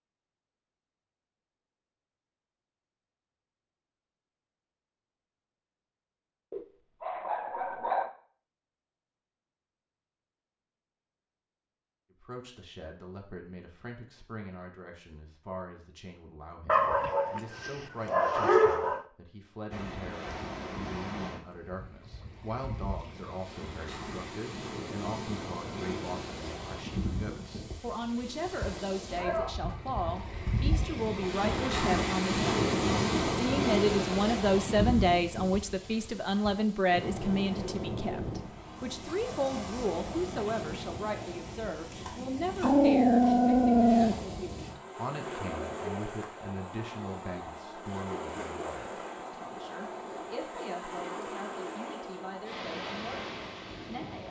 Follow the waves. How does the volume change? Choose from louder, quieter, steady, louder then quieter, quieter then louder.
louder then quieter.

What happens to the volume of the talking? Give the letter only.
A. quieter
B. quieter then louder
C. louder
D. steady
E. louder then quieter
E.